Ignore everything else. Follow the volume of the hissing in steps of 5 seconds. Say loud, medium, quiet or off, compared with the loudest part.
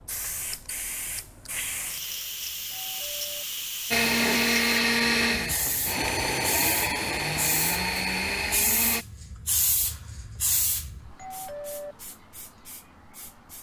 loud, loud, medium.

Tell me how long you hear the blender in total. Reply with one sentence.
You can hear the blender for 5 seconds altogether.